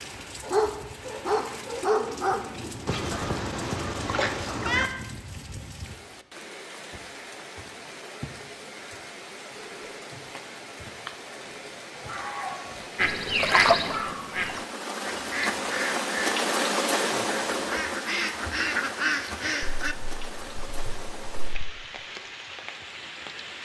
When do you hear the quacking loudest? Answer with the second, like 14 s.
14 s.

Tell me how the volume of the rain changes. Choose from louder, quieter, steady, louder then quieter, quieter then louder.
louder then quieter.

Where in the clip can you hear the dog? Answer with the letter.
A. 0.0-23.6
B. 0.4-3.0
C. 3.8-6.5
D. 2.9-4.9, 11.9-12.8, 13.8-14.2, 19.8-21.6
B.